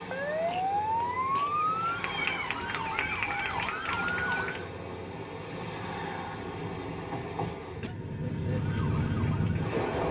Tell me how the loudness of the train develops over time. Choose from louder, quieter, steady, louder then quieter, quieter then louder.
louder.